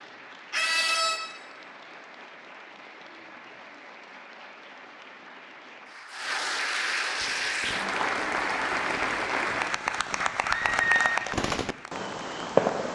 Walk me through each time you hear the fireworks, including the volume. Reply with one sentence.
The fireworks can be heard from 7.2 to 12.9 s, getting louder.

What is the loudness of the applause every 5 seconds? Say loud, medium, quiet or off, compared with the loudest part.
quiet, loud, loud.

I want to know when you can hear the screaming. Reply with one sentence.
You can hear the screaming from 0.5 to 1.2 s and from 10.4 to 11.2 s.